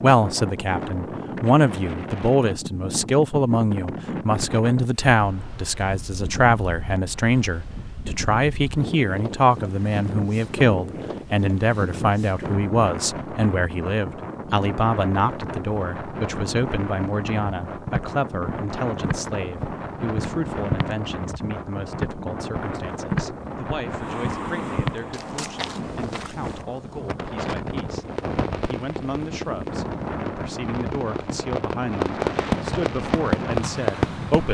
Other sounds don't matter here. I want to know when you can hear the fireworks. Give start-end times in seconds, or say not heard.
27.9-34.4.